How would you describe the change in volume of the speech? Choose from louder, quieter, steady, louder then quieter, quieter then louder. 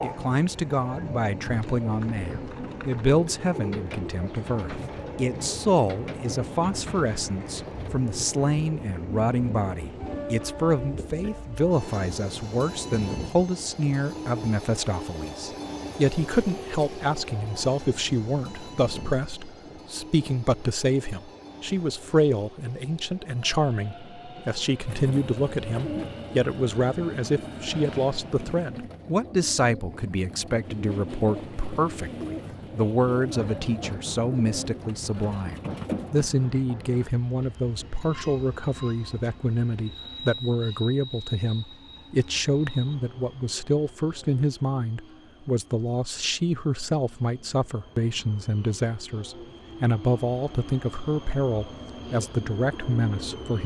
steady.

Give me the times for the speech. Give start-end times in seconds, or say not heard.
0.0-53.6.